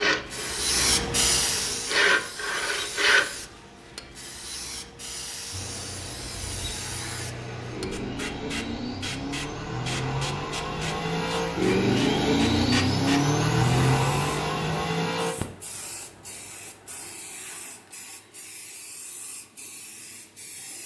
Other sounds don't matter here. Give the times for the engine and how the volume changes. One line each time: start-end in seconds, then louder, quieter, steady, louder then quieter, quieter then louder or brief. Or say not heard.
5.5-15.3 louder.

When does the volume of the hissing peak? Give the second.
1 s.